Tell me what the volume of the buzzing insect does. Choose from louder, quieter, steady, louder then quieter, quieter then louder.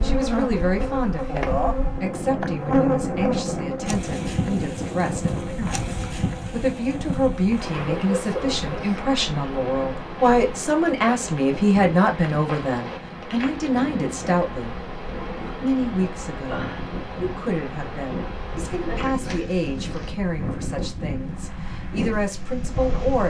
quieter.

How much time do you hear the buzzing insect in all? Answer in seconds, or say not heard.
20 s.